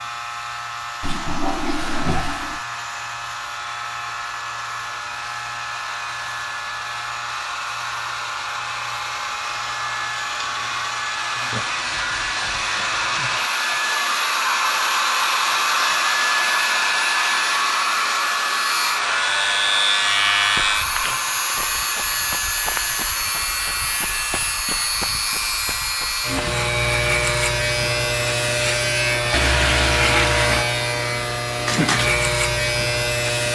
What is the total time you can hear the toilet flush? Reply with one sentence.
The toilet flush can be heard for 3 seconds in total.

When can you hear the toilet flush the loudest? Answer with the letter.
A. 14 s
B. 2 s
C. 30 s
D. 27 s
C.